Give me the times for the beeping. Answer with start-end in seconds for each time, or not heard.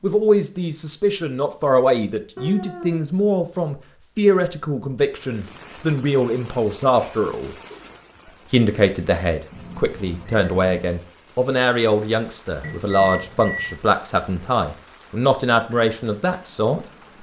12.6-13.8.